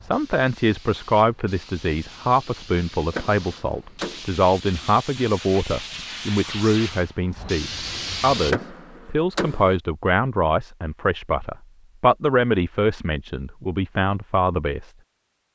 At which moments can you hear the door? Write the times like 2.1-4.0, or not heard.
3.0-4.2, 8.3-9.8.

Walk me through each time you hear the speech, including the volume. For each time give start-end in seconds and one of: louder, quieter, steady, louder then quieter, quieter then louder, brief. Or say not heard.
0.0-14.9 steady.